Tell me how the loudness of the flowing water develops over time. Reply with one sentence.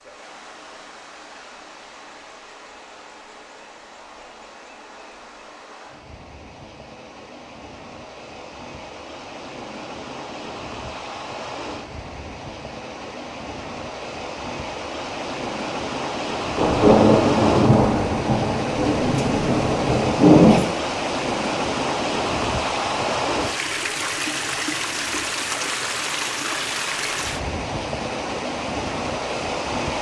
The loudness of the flowing water goes up.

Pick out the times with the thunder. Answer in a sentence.
You can hear the thunder from 16.6 to 20.6 s.